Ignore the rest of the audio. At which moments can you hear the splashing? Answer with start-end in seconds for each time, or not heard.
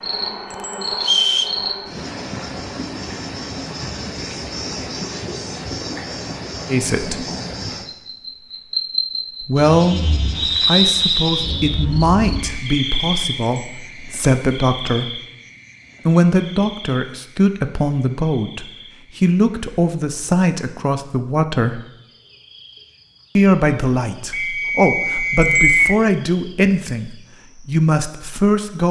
not heard.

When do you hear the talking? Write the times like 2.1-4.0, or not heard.
6.7-7.2, 9.4-15.2, 16.1-21.8, 23.4-28.8.